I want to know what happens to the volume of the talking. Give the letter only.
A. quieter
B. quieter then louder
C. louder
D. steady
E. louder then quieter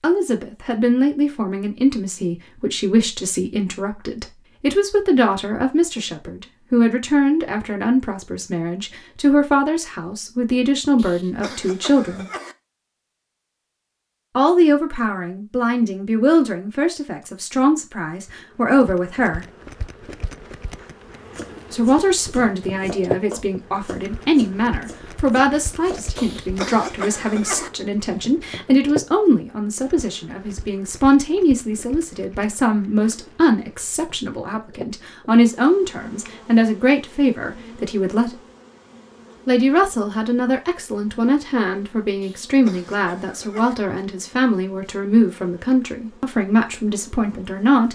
D.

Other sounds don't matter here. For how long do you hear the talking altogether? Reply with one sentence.
You can hear the talking for 42 seconds altogether.